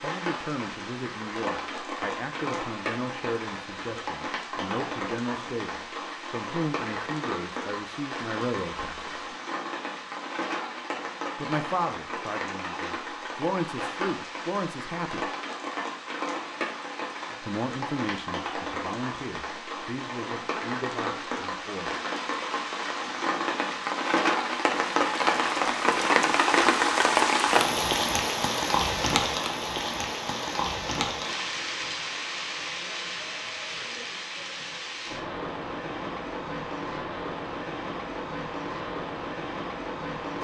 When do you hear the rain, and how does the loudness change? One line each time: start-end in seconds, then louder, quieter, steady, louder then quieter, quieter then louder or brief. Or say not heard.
0.0-40.3 louder then quieter.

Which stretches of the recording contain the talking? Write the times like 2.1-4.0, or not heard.
0.0-9.2, 11.3-15.3, 17.4-22.0.